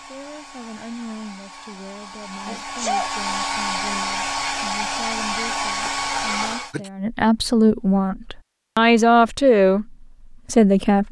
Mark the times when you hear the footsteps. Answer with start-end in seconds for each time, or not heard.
not heard.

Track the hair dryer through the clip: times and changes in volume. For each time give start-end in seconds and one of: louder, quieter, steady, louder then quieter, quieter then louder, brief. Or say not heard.
0.0-6.8 louder.